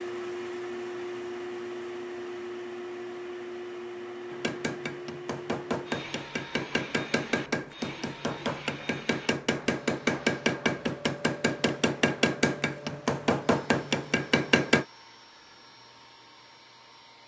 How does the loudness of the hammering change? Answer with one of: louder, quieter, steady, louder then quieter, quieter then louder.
louder.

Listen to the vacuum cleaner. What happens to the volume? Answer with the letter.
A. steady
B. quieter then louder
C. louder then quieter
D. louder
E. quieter
E.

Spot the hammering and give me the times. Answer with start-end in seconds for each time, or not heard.
4.3-14.8.